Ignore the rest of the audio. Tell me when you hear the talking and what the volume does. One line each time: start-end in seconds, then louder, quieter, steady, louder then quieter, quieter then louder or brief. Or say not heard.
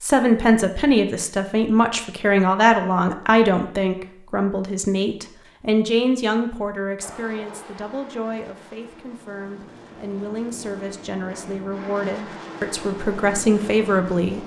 0.0-14.4 quieter then louder.